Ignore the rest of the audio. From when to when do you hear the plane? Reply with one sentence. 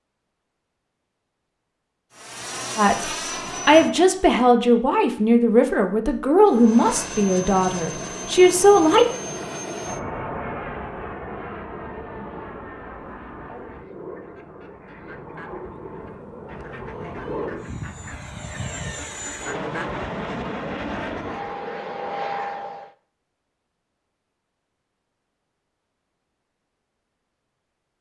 The plane can be heard from 2.1 to 4.3 s and from 6.5 to 22.9 s.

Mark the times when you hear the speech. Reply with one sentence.
The speech can be heard from 2.8 to 9.1 s.